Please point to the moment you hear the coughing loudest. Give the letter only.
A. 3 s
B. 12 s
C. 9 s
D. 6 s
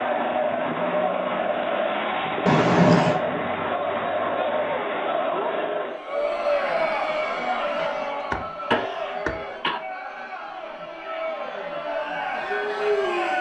A.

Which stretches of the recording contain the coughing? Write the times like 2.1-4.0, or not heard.
2.5-3.2, 7.8-9.8.